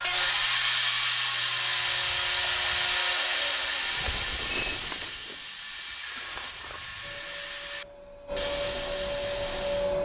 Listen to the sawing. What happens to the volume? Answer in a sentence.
The loudness of the sawing goes down.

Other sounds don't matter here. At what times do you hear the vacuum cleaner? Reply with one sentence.
You can hear the vacuum cleaner from 7.0 to 10.0 s.